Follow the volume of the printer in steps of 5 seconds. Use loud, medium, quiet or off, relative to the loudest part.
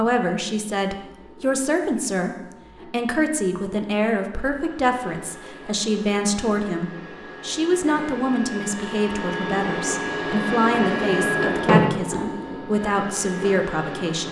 quiet, medium, loud.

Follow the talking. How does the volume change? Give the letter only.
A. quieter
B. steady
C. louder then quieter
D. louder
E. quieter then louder
B.